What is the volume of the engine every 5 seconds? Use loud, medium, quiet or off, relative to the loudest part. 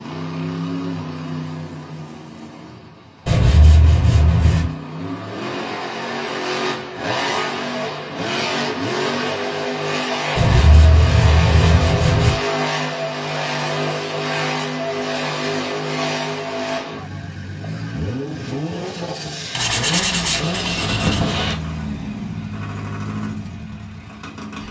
medium, loud, loud, loud, medium.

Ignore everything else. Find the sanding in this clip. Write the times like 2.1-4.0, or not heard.
3.2-4.8, 10.3-12.3, 19.6-21.6.